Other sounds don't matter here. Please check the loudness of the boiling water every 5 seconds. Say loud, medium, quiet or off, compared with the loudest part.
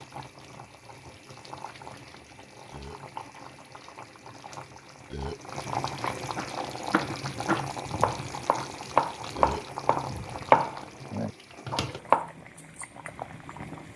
medium, loud, medium.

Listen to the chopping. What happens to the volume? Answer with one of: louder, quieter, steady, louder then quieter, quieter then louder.
louder then quieter.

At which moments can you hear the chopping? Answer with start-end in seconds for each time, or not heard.
6.3-12.2.